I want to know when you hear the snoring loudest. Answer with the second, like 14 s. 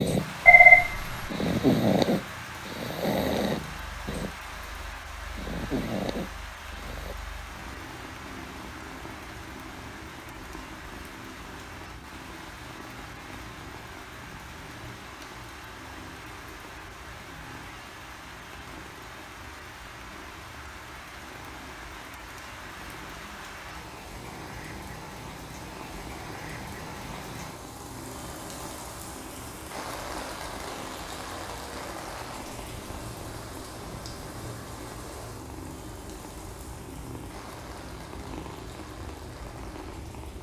2 s.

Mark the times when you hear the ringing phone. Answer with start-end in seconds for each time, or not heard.
0.5-1.3.